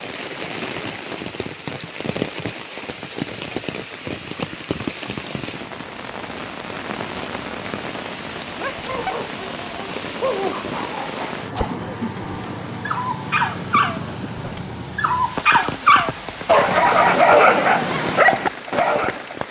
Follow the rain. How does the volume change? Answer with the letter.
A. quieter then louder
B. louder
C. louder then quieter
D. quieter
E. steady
E.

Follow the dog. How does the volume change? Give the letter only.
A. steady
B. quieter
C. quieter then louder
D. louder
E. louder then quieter
D.